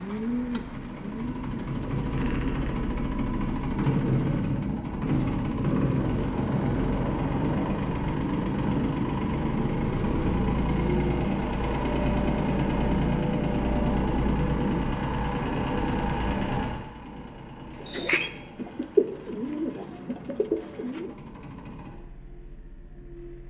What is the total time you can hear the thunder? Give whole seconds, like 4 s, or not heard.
2 s.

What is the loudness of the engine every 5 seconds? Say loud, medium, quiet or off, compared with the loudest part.
loud, loud, loud, medium, quiet.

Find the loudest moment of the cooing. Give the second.
19 s.